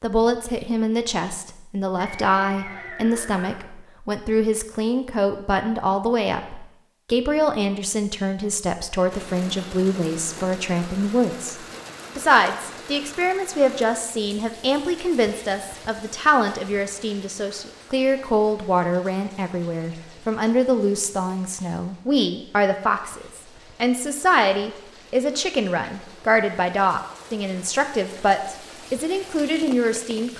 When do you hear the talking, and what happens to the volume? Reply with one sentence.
The talking can be heard from 0.0 to 11.6 s, at a steady volume; and from 12.2 to 30.3 s, at a steady volume.